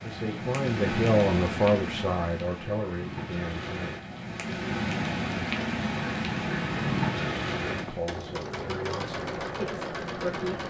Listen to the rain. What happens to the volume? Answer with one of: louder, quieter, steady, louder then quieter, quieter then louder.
quieter then louder.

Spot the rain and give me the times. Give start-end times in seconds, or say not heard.
0.0-8.2.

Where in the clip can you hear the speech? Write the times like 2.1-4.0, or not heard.
0.0-3.9, 7.8-10.6.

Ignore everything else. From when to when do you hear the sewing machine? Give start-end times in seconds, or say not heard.
7.6-10.6.